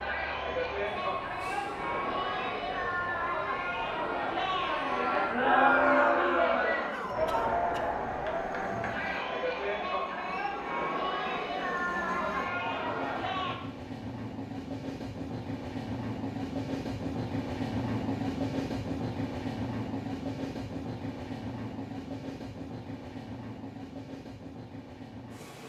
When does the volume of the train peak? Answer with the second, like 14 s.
18 s.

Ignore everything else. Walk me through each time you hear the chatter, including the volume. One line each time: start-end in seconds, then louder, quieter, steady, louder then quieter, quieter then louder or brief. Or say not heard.
0.0-13.6 louder then quieter.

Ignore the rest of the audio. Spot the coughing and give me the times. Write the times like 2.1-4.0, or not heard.
6.8-8.0.